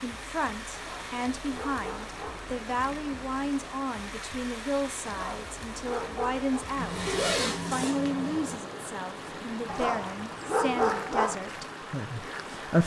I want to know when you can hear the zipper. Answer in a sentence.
The zipper can be heard from 6.8 to 8.6 s.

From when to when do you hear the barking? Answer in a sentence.
You can hear the barking from 0.7 to 2.4 s, from 5.0 to 6.7 s and from 9.7 to 11.3 s.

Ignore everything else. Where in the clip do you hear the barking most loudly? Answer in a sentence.
The volume of the barking peaks at 11 seconds.